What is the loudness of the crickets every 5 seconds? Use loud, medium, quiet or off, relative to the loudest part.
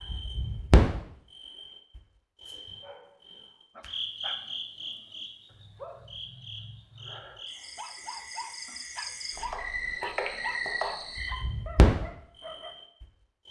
loud, medium, loud.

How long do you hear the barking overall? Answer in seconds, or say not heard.
10 s.